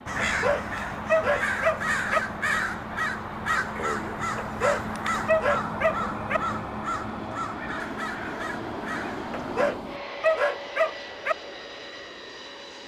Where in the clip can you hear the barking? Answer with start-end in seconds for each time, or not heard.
0.2-2.2, 4.3-6.4, 9.3-11.3.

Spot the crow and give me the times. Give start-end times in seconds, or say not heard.
0.1-9.7.